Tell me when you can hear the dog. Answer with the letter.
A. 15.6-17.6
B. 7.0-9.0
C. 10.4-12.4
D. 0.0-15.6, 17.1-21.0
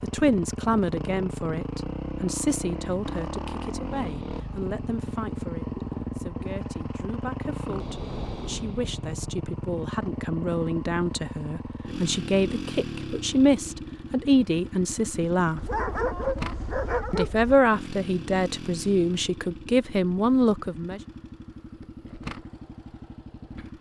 A.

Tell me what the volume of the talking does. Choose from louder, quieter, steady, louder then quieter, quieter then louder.
quieter then louder.